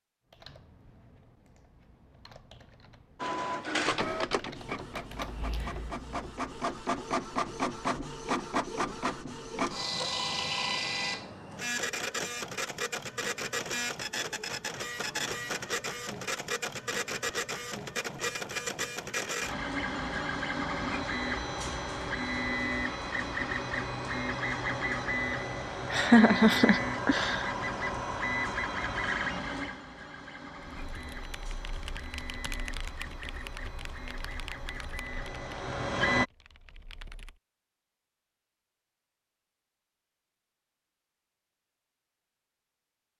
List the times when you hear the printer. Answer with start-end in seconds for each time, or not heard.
3.2-36.2.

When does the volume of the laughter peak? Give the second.
26 s.